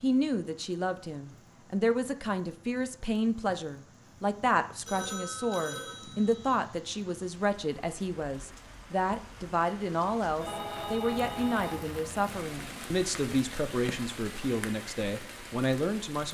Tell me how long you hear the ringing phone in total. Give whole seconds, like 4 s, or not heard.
4 s.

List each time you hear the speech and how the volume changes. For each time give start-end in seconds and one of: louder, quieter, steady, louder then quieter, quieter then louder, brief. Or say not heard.
0.0-16.2 steady.